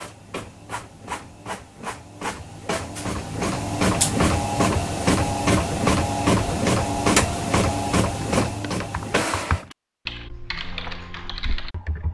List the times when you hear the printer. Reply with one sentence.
The printer can be heard from 0.0 to 9.7 s.